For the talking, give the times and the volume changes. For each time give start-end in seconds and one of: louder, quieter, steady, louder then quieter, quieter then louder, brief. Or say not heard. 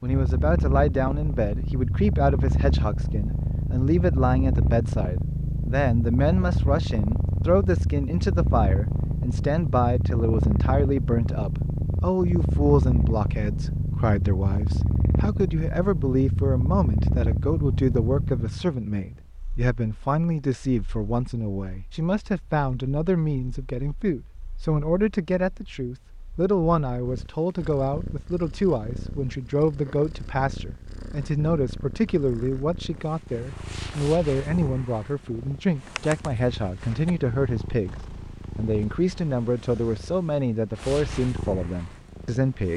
0.0-42.7 steady.